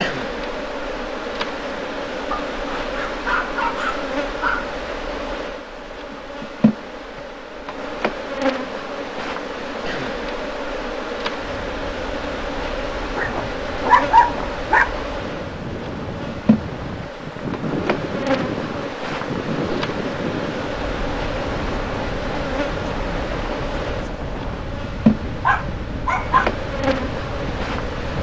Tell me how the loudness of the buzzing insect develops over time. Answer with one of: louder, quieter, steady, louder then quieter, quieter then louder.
steady.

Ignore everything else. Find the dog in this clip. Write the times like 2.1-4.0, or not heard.
2.3-4.7, 13.0-15.0, 25.4-26.4.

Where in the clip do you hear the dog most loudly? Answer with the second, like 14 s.
14 s.